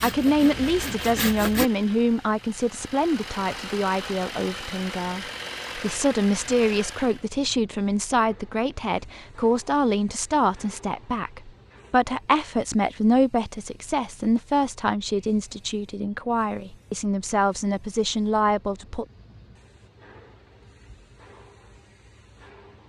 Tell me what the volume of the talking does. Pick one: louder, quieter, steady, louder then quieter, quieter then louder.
steady.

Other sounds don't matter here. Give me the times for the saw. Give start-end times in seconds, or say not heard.
0.0-1.7.